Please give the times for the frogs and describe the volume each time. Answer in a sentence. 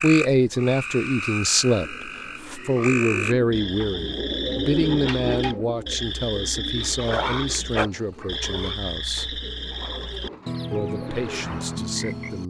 You can hear the frogs from 0.0 to 12.4 s, at a steady volume.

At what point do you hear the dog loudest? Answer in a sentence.
The volume of the dog peaks at 7 seconds.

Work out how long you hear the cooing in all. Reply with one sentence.
The cooing can be heard for 10 seconds in total.